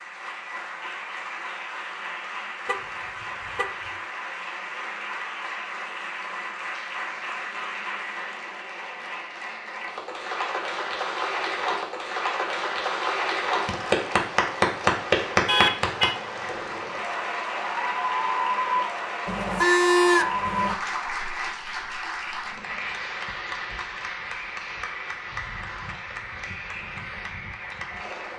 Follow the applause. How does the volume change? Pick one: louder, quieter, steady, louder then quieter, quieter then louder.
louder then quieter.